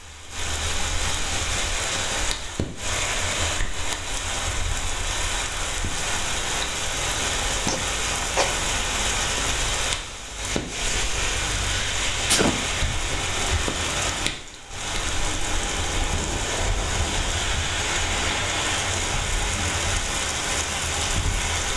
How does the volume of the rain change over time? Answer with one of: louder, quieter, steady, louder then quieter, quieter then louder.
steady.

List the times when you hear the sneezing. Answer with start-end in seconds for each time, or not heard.
7.7-8.6, 12.2-12.7.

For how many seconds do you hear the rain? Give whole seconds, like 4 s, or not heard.
22 s.